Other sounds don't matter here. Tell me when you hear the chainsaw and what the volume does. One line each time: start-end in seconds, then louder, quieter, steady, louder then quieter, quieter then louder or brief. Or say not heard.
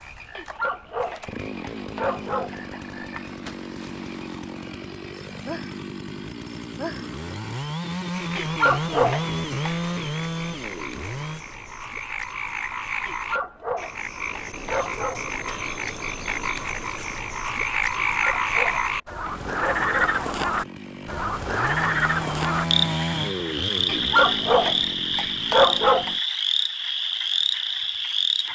0.0-11.4 louder
19.2-26.2 louder then quieter.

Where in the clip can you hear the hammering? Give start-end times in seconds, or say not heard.
not heard.